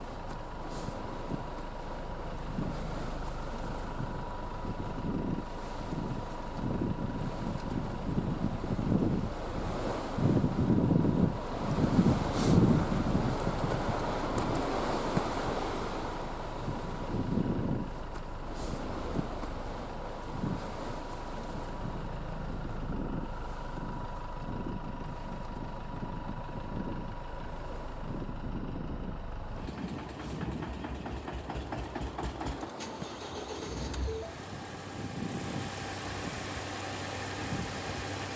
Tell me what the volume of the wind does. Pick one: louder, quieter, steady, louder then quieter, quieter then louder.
louder then quieter.